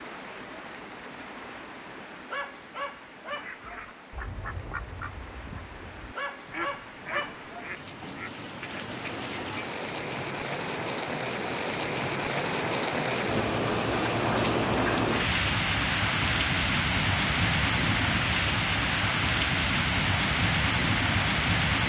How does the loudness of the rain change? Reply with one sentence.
The loudness of the rain goes up.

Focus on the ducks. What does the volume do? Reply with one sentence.
The loudness of the ducks goes down, then up.